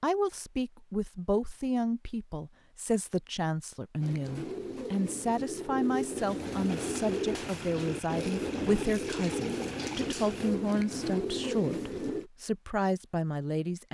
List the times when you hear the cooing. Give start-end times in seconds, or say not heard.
4.0-12.3.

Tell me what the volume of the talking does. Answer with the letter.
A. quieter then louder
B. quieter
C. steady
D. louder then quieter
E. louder
C.